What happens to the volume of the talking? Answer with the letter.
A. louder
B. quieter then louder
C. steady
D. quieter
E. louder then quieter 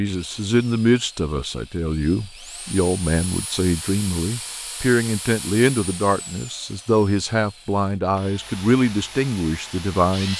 C.